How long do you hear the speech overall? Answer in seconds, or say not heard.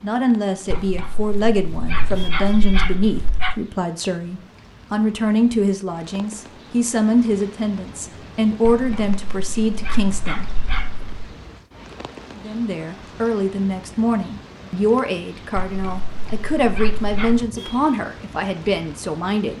18 s.